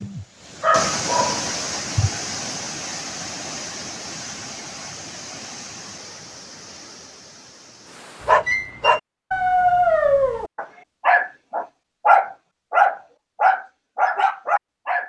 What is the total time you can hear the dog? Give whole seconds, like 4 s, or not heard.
9 s.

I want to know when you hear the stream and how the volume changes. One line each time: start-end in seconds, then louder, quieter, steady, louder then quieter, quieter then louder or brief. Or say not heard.
0.0-8.3 quieter.